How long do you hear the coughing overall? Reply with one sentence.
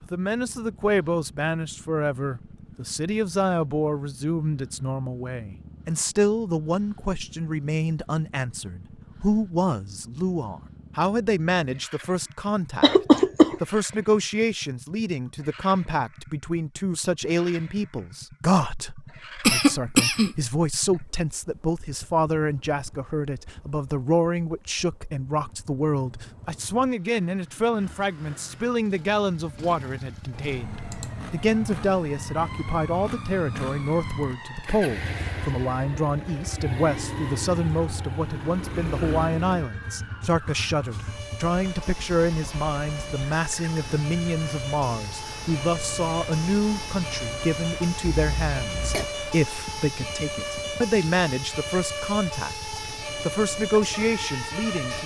The coughing can be heard for 3 seconds in total.